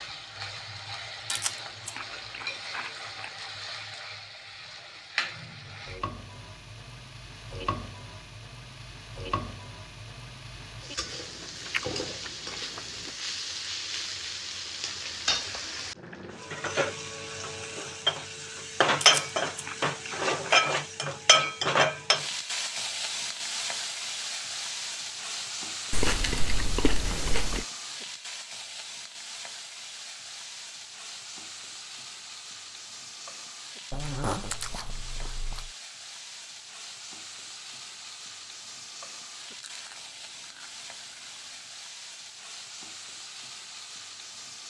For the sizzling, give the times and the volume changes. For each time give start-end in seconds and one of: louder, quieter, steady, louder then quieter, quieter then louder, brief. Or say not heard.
0.0-44.6 louder then quieter.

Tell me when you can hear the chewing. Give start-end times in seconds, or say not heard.
1.3-3.3, 11.4-13.1, 19.0-20.6, 25.9-27.6, 33.9-35.7, 39.5-41.5.